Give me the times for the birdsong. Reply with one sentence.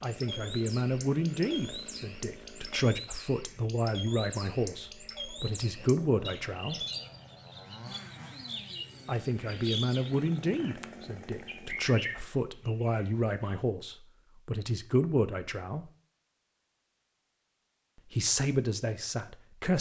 The birdsong can be heard from 0.0 to 10.8 s and from 11.4 to 13.6 s.